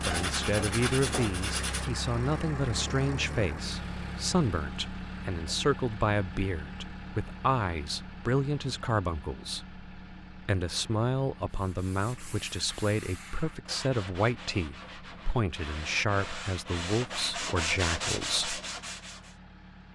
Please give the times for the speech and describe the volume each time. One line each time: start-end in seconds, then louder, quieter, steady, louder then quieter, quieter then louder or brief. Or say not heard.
0.1-18.6 steady.